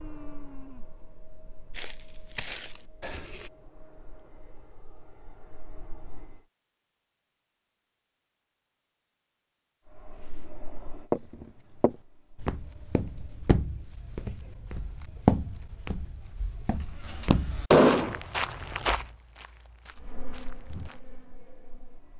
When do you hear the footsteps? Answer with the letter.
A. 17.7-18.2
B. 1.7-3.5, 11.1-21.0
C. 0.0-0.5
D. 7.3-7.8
B.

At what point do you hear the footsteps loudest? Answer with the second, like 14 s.
15 s.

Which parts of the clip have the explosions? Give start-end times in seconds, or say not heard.
17.7-18.2.